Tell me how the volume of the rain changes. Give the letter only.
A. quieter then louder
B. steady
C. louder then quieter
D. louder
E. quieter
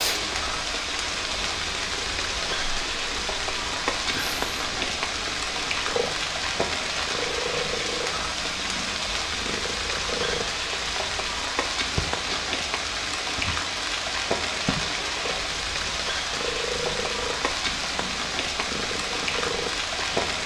B.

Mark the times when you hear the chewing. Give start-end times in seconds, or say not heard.
not heard.